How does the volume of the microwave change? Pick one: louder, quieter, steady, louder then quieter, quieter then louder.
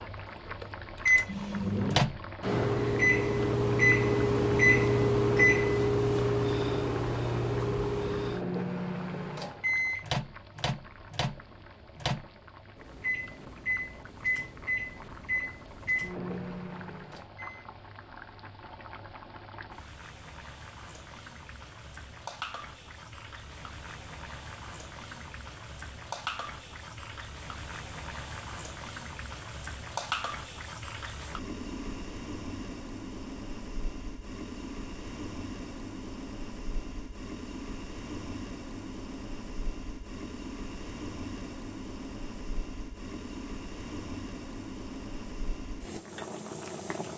quieter.